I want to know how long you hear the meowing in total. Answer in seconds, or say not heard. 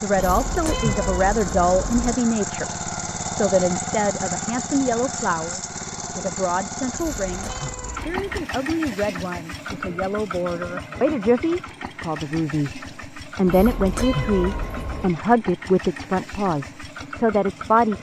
5 s.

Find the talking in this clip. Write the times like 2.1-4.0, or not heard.
0.0-17.9.